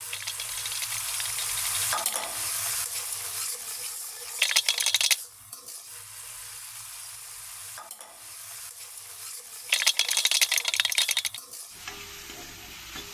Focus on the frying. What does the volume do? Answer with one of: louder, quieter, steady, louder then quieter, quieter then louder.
quieter.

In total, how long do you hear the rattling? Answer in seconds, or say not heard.
5 s.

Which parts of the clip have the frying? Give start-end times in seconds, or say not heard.
0.0-13.0.